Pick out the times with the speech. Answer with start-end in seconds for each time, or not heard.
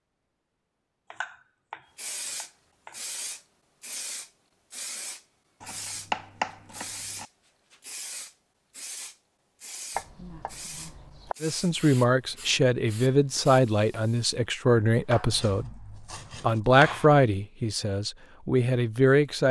11.4-15.7, 16.4-19.4.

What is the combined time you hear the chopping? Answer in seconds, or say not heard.
7 s.